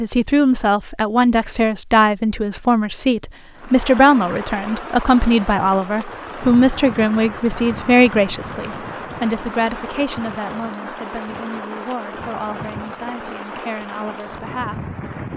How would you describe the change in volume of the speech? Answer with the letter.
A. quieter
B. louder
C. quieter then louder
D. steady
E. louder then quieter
A.